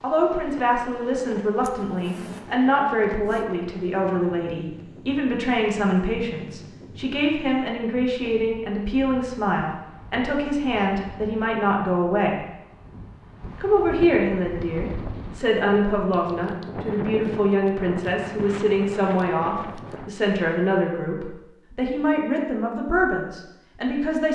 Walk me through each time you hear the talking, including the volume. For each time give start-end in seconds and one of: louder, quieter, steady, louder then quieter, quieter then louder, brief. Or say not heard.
0.0-12.3 steady
13.6-24.3 steady.